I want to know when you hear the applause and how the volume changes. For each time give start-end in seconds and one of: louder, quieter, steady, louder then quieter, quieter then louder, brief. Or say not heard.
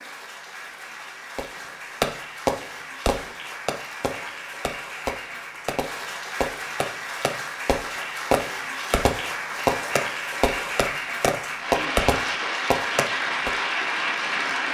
0.0-14.7 louder.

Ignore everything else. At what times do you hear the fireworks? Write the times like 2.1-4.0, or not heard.
1.4-13.5.